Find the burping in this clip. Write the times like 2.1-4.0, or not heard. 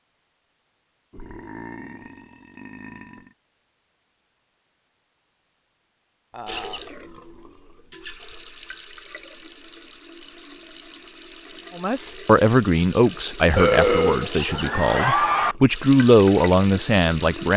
1.1-3.4, 6.3-6.8, 13.6-15.6.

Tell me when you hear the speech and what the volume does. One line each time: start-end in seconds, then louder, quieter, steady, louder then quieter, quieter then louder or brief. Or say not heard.
11.8-17.5 quieter then louder.